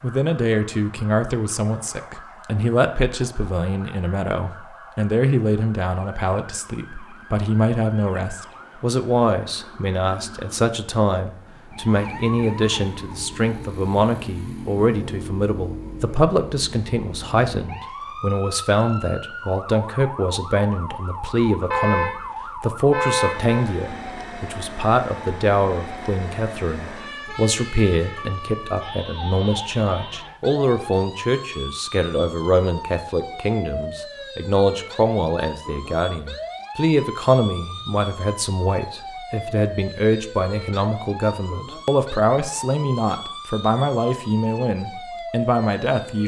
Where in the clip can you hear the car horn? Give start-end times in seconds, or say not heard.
21.7-23.7.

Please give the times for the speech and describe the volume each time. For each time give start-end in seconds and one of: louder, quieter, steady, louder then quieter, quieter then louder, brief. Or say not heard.
0.0-46.2 steady.